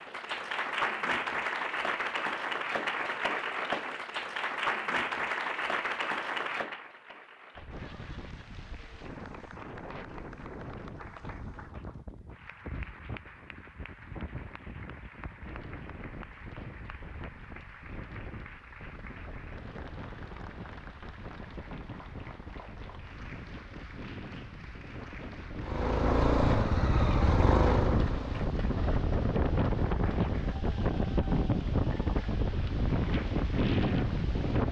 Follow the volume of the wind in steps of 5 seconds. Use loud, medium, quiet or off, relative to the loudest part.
off, quiet, quiet, quiet, quiet, loud, loud.